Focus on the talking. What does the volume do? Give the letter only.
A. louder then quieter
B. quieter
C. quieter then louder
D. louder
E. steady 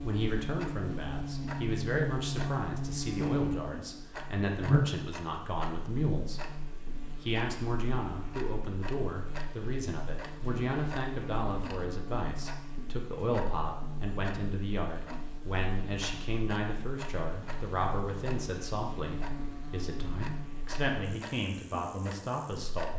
E.